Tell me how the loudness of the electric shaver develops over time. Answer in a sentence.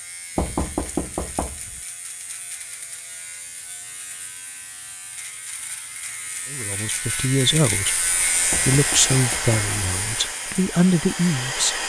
The loudness of the electric shaver goes up.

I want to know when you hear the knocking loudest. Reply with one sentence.
The volume of the knocking peaks at 1 second.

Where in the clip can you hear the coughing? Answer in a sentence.
The coughing can't be heard in this clip.